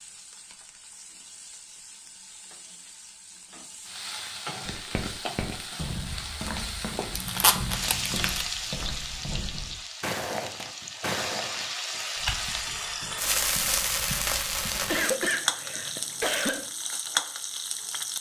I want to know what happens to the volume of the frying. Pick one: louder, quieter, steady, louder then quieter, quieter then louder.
louder.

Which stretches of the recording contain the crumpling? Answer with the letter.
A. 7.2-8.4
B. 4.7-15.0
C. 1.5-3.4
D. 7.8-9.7
A.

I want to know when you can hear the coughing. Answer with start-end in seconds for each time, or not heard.
14.8-16.7.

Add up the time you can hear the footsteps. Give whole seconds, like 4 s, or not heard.
10 s.